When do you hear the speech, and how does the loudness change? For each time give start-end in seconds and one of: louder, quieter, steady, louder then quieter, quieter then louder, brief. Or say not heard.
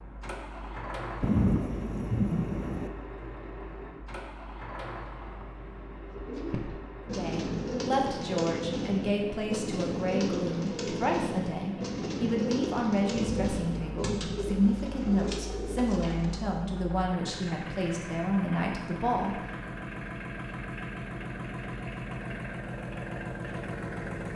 7.0-19.4 steady.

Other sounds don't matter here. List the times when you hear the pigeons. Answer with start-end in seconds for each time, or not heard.
6.1-16.5.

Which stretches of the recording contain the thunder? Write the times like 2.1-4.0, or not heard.
1.2-2.9, 13.1-14.8.